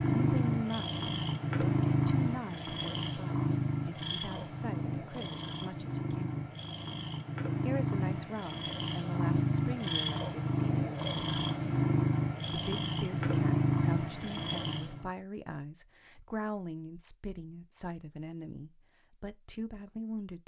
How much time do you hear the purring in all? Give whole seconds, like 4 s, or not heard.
15 s.